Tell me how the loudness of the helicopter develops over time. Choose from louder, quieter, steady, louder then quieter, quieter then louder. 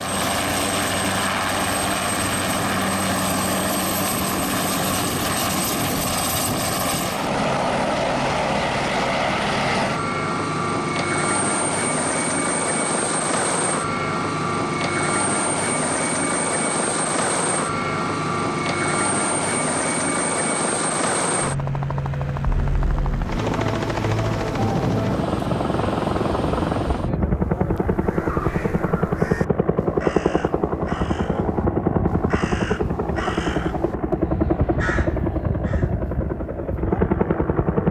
steady.